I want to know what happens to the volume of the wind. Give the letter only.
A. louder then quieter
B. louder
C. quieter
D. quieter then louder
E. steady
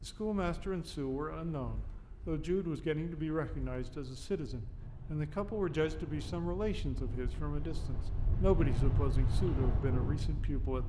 B.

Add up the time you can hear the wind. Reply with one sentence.
You can hear the wind for 11 seconds altogether.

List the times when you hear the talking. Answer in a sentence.
You can hear the talking from 0.0 to 10.8 s.